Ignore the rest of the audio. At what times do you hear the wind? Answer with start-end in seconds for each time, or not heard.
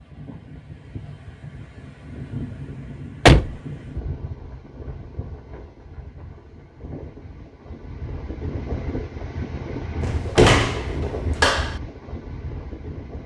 0.0-13.2.